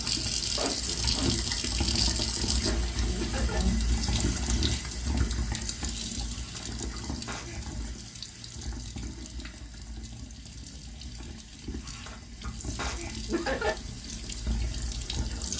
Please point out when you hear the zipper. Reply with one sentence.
The zipper can be heard from 0.6 to 1.4 s.